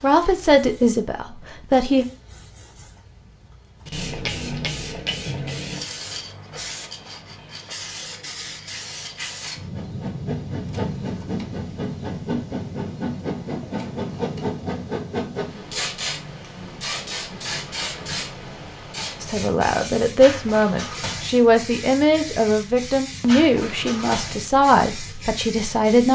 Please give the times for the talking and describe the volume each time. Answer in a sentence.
The talking can be heard briefly from 0.0 to 2.0 s; and from 19.2 to 26.1 s, at a steady volume.